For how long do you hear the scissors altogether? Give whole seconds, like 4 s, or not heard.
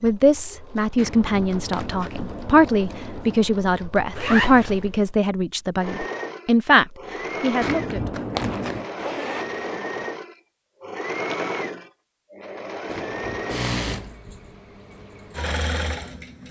5 s.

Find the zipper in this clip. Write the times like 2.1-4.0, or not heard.
4.2-4.8, 8.4-10.1.